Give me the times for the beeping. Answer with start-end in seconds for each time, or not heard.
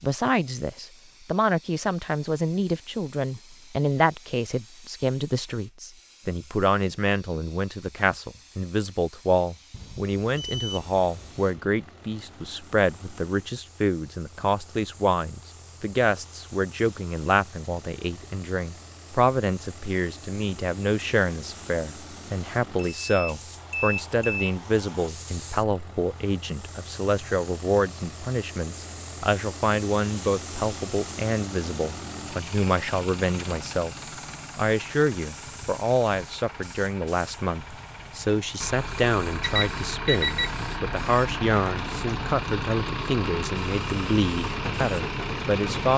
9.7-11.4, 22.9-24.5, 39.4-40.5.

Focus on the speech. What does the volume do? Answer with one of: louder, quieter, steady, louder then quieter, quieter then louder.
steady.